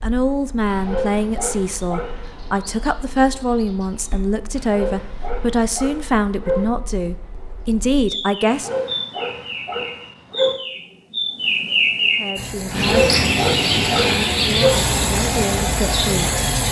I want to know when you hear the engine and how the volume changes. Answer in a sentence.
You can hear the engine from 12.3 to 16.6 s, getting louder.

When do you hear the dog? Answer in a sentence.
You can hear the dog from 0.7 to 2.4 s, from 4.5 to 6.7 s, from 8.4 to 10.6 s and from 12.7 to 14.8 s.